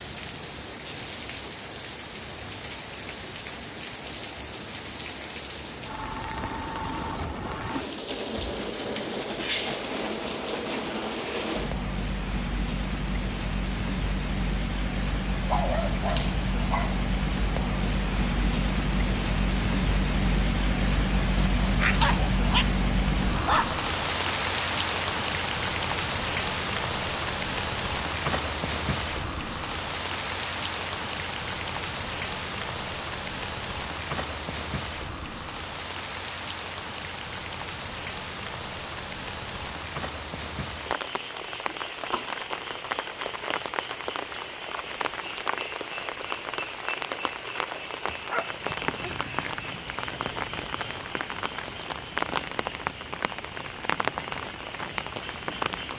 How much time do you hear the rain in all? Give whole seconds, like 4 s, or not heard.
56 s.